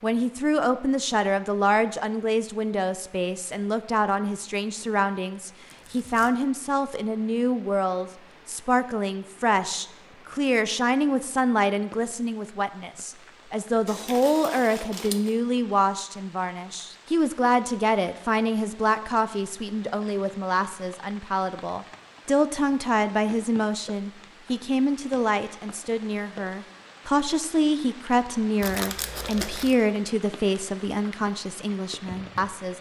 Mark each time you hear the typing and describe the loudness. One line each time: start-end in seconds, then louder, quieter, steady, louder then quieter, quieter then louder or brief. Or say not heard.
not heard.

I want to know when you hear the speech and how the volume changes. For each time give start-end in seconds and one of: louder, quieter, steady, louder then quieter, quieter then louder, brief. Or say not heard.
0.0-32.7 steady.